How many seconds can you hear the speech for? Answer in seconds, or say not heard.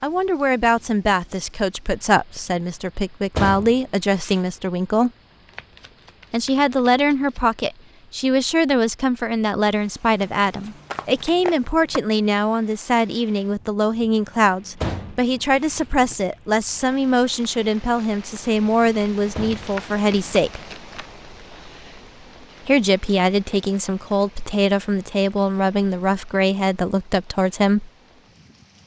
25 s.